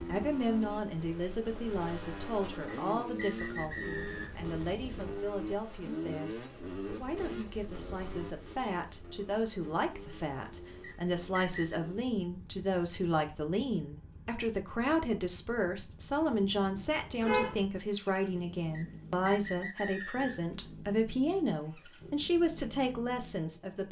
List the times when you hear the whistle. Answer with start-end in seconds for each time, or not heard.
2.6-4.3, 10.8-11.8, 18.7-20.6.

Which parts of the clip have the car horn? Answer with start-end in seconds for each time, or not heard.
16.3-17.6.